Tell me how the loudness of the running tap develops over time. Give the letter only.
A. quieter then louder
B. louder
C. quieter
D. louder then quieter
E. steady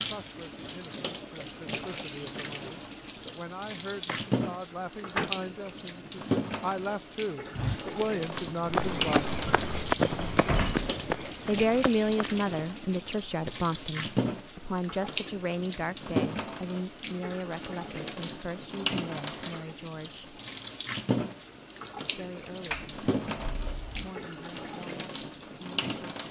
E.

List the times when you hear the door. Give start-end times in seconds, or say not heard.
4.0-5.3, 9.3-10.9, 22.7-24.1.